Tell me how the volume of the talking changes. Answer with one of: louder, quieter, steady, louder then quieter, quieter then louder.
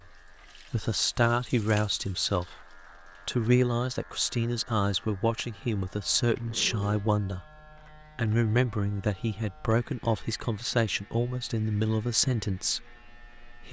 steady.